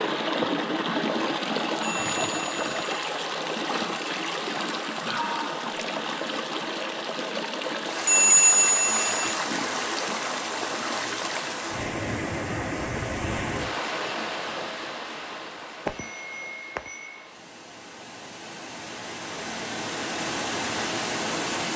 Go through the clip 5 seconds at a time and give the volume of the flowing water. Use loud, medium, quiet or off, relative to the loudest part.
loud, loud, loud, medium, loud.